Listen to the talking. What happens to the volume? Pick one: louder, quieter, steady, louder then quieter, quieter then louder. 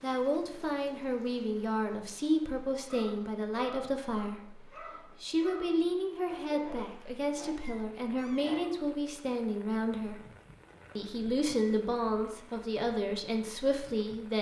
steady.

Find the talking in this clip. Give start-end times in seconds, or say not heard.
0.0-10.2, 10.9-14.3.